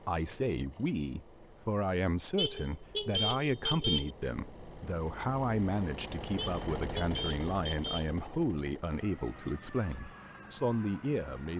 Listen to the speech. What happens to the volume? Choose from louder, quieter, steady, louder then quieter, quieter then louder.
steady.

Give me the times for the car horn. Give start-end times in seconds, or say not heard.
2.4-4.1, 6.3-8.1.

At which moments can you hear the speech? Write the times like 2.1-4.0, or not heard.
0.1-11.5.